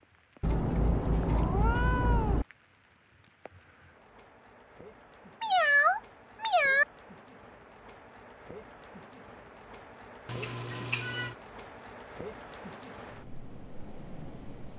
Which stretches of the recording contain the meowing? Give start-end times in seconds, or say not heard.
0.4-2.5, 5.4-6.8, 10.2-11.3.